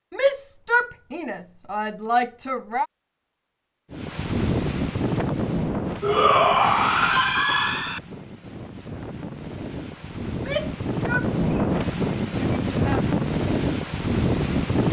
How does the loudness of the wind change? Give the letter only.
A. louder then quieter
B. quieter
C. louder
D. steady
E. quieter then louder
E.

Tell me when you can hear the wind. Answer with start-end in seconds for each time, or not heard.
3.9-14.8.